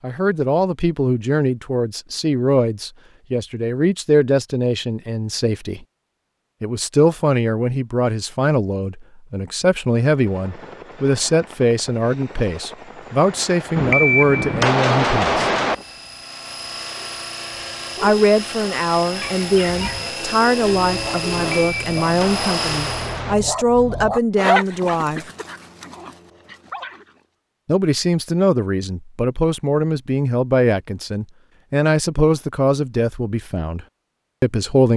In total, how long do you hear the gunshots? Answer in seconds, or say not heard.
4 s.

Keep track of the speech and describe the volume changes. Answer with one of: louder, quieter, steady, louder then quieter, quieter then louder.
steady.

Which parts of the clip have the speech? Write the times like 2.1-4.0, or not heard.
0.0-5.8, 6.6-15.5, 18.0-25.2, 27.6-34.9.